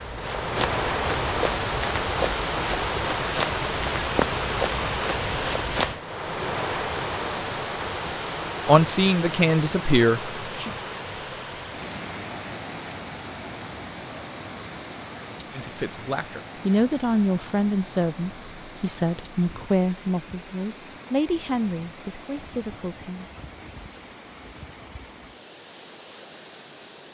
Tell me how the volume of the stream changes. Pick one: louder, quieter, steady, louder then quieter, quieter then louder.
quieter.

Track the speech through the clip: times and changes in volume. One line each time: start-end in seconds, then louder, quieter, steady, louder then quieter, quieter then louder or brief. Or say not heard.
8.7-10.7 brief
15.5-23.2 quieter.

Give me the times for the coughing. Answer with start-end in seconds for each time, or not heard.
not heard.